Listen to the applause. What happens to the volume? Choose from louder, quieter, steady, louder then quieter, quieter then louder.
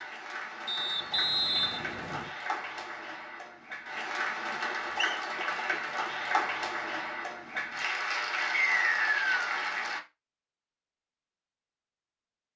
louder.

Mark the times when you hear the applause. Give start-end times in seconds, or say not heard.
0.0-10.0.